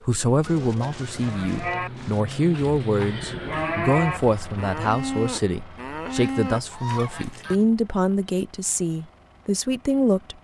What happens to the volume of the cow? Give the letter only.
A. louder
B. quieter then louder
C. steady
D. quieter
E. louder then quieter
C.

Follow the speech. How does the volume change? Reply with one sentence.
The loudness of the speech stays about the same.